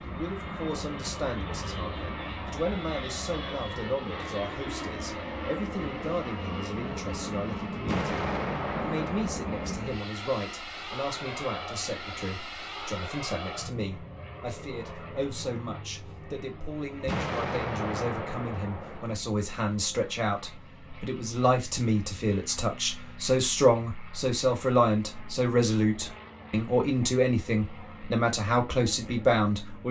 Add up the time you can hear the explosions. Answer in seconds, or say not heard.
4 s.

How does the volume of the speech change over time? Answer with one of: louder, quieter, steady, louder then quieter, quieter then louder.
louder.